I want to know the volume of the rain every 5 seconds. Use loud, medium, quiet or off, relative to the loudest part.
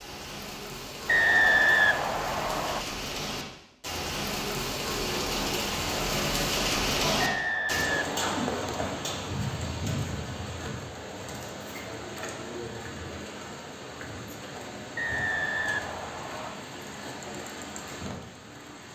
medium, loud, medium, medium.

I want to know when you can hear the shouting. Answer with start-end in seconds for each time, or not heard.
7.0-7.4.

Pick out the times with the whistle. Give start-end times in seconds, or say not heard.
1.1-2.9, 7.2-8.9, 14.9-16.6.